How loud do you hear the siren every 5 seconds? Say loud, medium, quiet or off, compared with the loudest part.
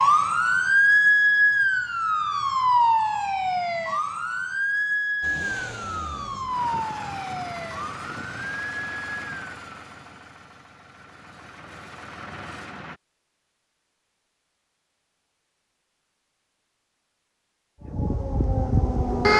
loud, medium, off, loud.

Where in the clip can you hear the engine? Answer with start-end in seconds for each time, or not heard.
5.2-13.0.